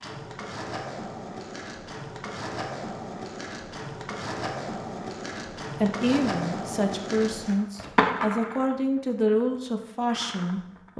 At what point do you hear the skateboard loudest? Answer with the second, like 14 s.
8 s.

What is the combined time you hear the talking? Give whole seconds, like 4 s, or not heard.
5 s.